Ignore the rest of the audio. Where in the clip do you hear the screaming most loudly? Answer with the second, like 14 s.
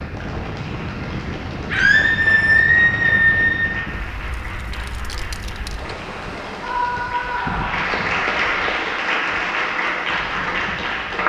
3 s.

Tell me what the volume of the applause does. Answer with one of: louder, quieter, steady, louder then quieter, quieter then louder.
louder.